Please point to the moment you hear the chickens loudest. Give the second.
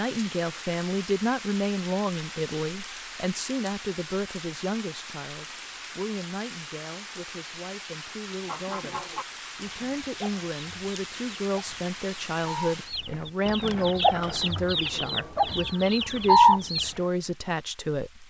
16 s.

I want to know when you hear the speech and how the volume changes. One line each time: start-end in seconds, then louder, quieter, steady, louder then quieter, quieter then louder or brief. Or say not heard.
0.0-18.2 quieter then louder.